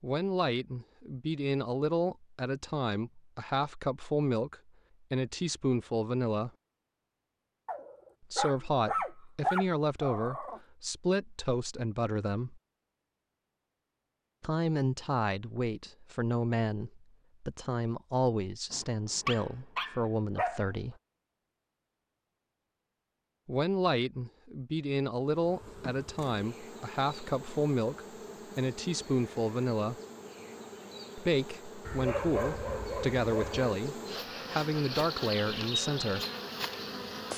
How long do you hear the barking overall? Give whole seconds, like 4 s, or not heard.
7 s.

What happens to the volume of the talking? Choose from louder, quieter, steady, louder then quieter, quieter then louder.
steady.